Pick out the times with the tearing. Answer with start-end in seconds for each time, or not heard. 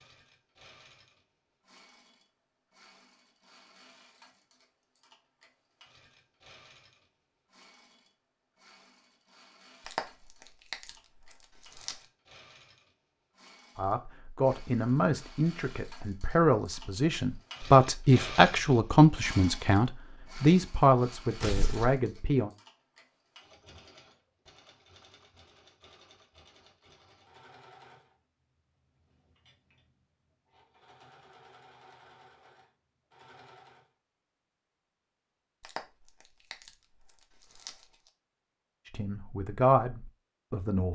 9.8-12.0, 21.4-22.0, 35.6-37.9.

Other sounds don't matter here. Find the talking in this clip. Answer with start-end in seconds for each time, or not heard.
13.8-22.5, 38.9-40.8.